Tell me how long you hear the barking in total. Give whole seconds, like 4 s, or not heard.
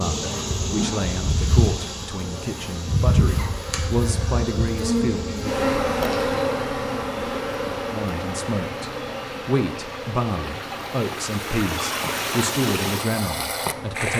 not heard.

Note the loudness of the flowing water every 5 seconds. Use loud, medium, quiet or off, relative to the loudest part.
off, medium, loud.